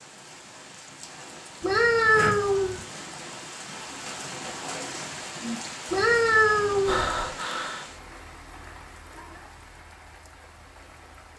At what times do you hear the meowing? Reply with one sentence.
The meowing can be heard from 1.6 to 2.8 s and from 5.9 to 7.1 s.